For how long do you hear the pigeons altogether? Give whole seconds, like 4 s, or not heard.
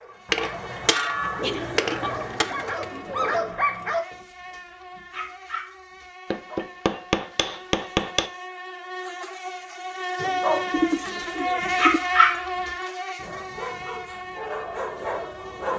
4 s.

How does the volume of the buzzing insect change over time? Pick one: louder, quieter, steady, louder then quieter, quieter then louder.
louder then quieter.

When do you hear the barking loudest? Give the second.
12 s.